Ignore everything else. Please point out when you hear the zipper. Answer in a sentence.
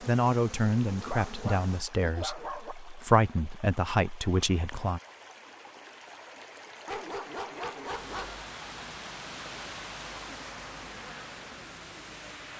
The zipper can't be heard in this clip.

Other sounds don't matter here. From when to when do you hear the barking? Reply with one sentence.
The barking can be heard from 1.0 to 2.8 s and from 6.8 to 8.4 s.